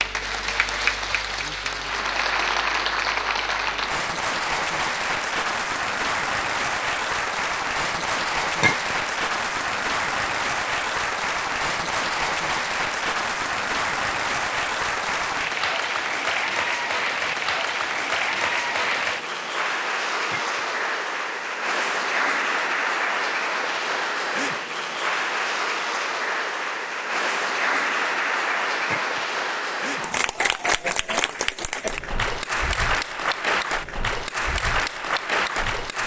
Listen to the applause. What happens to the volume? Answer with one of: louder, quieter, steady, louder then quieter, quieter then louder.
steady.